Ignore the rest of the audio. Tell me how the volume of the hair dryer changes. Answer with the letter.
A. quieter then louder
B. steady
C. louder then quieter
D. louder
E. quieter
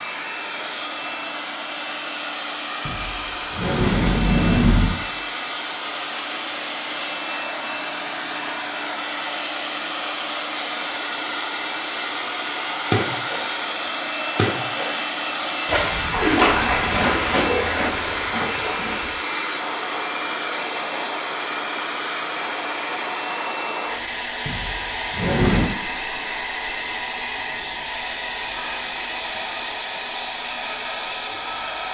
B.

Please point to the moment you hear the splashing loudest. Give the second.
16 s.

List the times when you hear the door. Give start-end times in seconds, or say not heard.
2.9-5.0, 24.4-25.7.